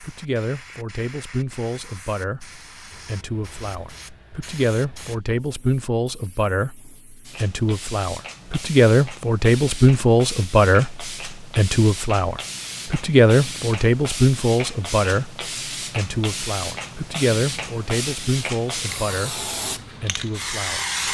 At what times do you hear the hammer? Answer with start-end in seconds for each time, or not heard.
not heard.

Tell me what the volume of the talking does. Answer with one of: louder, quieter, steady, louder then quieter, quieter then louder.
louder then quieter.